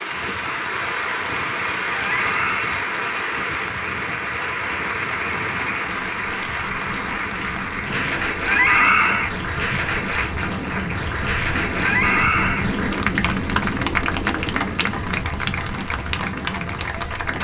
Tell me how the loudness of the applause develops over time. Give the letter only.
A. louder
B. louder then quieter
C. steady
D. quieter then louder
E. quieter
C.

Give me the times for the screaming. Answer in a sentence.
You can hear the screaming from 2.0 to 2.8 s, from 8.4 to 9.3 s and from 11.8 to 12.7 s.